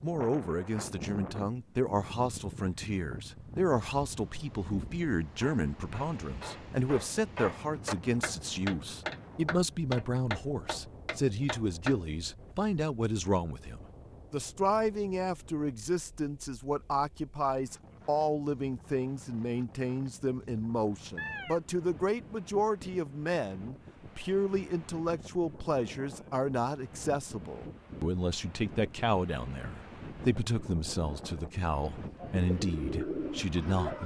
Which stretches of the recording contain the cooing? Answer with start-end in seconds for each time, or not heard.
32.1-34.0.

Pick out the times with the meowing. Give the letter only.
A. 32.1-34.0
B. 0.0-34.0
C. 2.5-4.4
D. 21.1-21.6
D.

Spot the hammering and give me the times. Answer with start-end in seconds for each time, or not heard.
5.4-12.0.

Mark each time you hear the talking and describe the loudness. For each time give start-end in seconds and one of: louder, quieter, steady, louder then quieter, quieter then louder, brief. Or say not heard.
0.0-34.0 steady.